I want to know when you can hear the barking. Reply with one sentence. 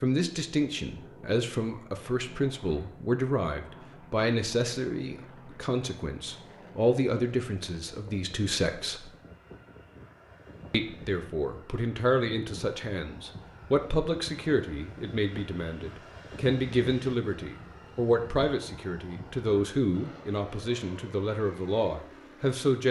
You can't hear the barking here.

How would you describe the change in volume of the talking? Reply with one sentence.
The volume of the talking stays about the same.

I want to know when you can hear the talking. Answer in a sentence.
The talking can be heard from 0.0 to 9.1 s and from 10.7 to 22.8 s.